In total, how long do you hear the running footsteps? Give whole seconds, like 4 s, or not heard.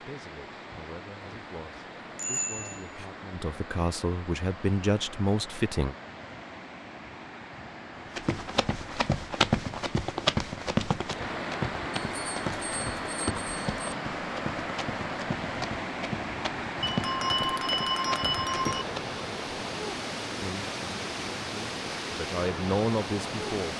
11 s.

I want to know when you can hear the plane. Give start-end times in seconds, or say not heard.
not heard.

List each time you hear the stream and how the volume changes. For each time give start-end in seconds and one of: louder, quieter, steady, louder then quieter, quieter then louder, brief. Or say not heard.
0.0-23.7 louder.